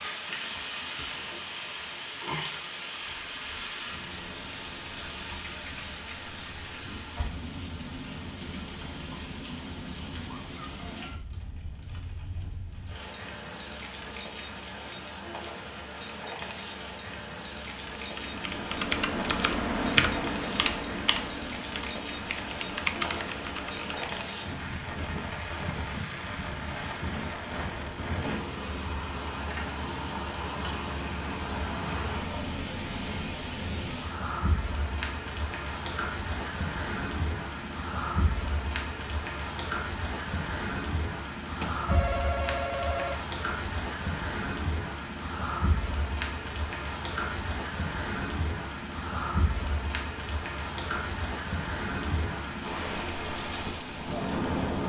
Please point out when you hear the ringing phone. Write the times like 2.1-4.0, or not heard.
41.6-43.1.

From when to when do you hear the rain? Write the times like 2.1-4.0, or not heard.
0.0-54.8.